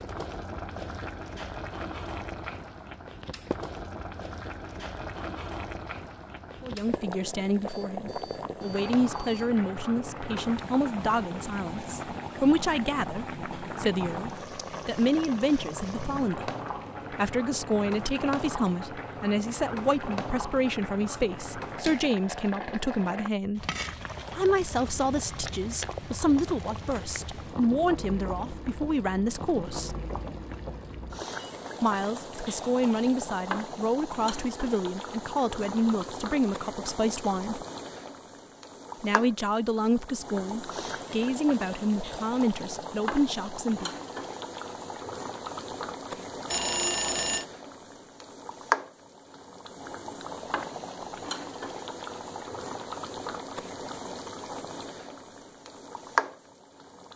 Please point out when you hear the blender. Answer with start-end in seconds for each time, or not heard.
not heard.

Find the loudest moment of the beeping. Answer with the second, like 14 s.
47 s.